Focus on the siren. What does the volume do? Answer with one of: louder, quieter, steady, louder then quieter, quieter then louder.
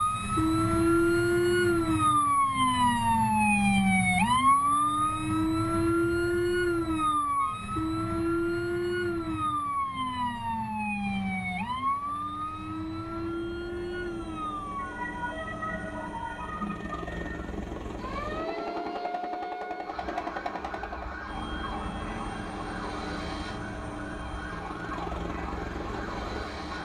quieter.